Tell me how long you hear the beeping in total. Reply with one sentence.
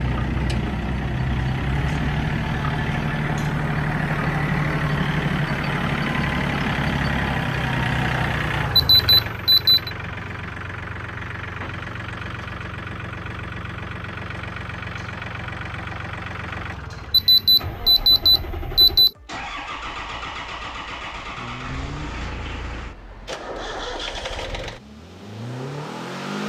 You can hear the beeping for 3 seconds altogether.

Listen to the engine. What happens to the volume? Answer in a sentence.
The volume of the engine goes down.